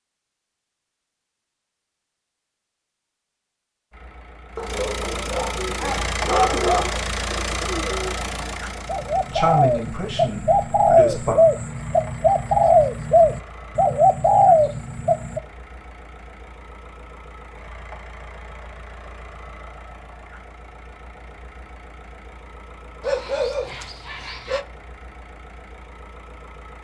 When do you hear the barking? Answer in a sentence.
The barking can be heard from 4.5 to 7.0 s and from 23.0 to 24.6 s.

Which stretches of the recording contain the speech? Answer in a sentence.
The speech can be heard from 9.3 to 11.3 s.